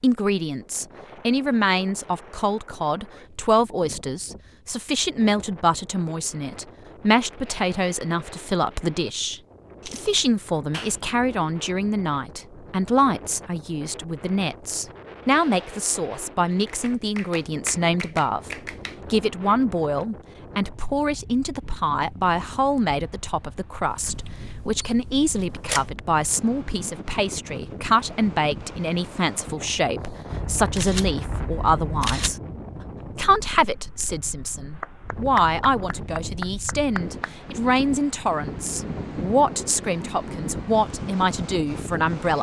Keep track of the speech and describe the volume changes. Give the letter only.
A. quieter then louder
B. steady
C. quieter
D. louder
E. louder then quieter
B.